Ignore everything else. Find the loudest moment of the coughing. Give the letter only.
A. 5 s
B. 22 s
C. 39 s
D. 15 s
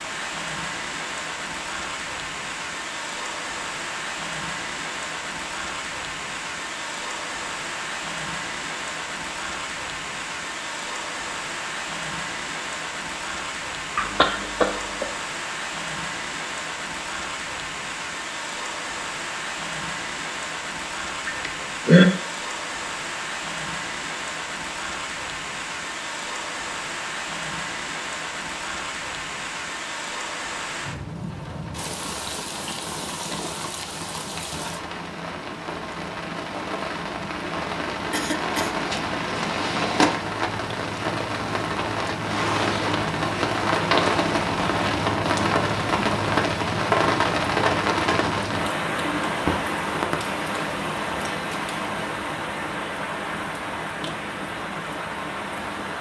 B.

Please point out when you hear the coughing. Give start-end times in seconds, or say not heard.
13.9-15.1, 21.2-22.1, 38.1-38.7.